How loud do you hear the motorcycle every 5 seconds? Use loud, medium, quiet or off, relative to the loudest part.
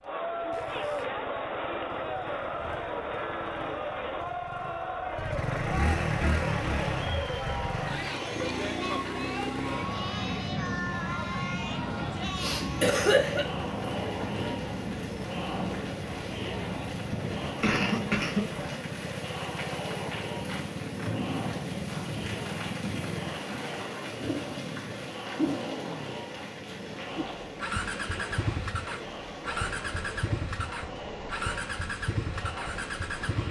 quiet, loud, medium, medium, medium, loud, loud.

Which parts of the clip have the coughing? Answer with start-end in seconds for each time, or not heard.
12.2-13.4, 17.6-18.6.